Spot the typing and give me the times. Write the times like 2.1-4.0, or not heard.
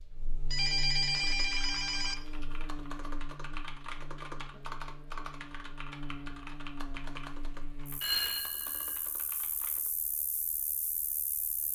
1.1-9.9.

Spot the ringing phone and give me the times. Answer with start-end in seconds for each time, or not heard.
0.5-2.1, 8.0-9.0.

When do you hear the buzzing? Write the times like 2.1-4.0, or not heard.
0.0-11.7.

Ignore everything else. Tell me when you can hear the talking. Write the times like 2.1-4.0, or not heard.
not heard.